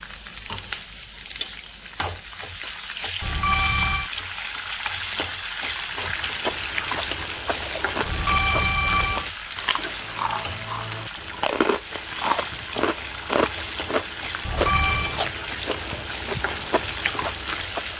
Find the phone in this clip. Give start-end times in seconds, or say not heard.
3.2-4.1, 8.1-9.2, 14.4-15.2.